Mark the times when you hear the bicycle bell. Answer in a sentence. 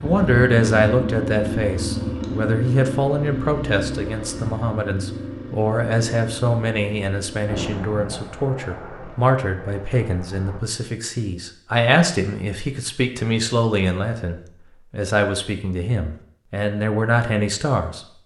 You can't hear the bicycle bell here.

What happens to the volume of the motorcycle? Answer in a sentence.
The volume of the motorcycle goes down.